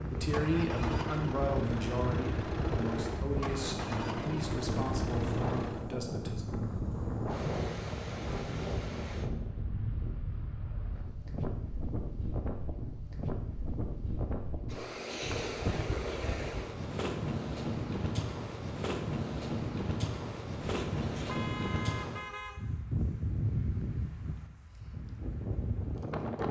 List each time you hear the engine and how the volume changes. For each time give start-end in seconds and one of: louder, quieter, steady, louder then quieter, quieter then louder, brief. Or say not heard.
0.1-5.9 steady.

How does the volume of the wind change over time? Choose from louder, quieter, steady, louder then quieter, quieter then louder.
steady.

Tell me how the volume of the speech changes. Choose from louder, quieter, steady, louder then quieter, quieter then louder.
quieter.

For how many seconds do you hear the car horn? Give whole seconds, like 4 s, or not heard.
2 s.